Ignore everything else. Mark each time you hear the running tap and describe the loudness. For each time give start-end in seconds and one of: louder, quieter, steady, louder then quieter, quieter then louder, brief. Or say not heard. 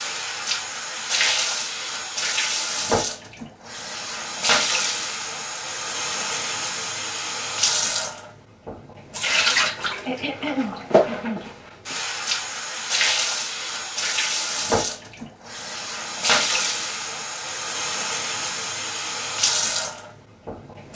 0.0-20.9 steady.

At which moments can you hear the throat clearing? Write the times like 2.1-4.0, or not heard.
10.1-11.5.